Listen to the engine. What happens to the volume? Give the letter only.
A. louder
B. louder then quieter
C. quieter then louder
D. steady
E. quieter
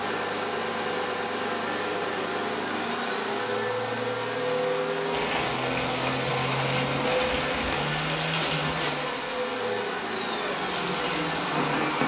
D.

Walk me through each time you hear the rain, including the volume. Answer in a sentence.
The rain can be heard from 5.1 to 12.0 s, getting quieter then louder.